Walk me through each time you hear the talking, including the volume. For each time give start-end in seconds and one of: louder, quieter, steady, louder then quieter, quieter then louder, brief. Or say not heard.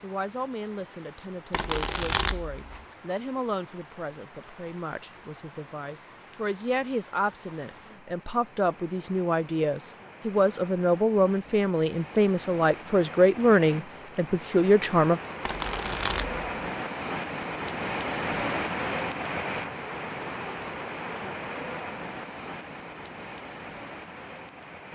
0.0-15.2 louder.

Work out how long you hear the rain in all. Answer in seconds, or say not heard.
25 s.